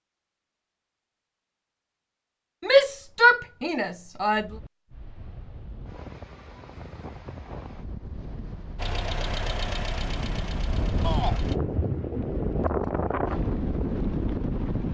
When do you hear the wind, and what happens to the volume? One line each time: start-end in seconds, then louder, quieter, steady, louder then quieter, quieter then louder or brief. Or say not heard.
4.3-14.8 louder.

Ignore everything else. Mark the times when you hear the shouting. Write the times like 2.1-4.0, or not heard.
2.6-4.5, 11.0-11.4.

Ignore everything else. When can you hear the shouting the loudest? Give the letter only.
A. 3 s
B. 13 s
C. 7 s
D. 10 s
A.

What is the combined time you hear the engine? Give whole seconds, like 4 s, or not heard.
3 s.